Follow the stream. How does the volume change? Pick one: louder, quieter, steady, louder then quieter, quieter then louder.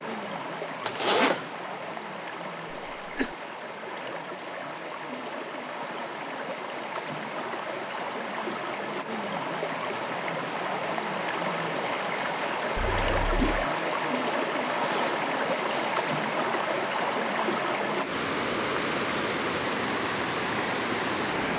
louder.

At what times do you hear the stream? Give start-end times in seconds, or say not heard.
0.0-21.5.